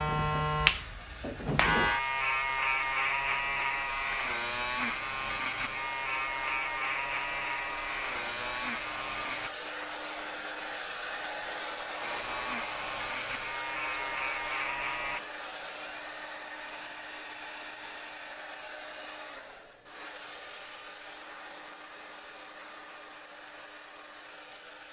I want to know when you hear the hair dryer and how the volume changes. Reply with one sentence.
The hair dryer can be heard from 0.2 to 24.8 s, getting louder then quieter.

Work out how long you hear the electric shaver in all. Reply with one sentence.
The electric shaver can be heard for 13 seconds in total.